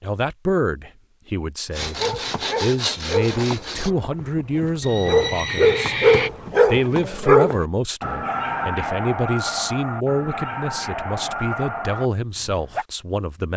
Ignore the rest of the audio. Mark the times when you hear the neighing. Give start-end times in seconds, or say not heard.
4.8-6.3.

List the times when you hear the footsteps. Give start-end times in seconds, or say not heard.
not heard.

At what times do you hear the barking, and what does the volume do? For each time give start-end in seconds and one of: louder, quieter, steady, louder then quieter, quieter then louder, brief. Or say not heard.
1.8-12.8 louder then quieter.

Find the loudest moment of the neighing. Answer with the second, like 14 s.
6 s.